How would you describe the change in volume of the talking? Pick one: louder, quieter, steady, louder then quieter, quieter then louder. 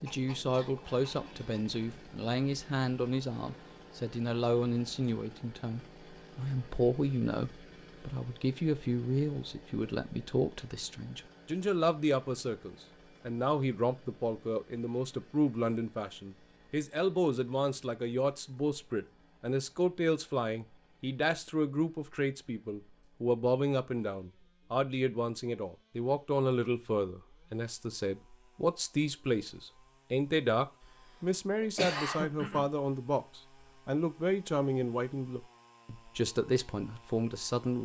steady.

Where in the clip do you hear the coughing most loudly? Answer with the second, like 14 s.
32 s.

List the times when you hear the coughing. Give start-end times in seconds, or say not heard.
0.1-2.0, 30.8-32.6.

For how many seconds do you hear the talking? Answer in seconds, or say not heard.
38 s.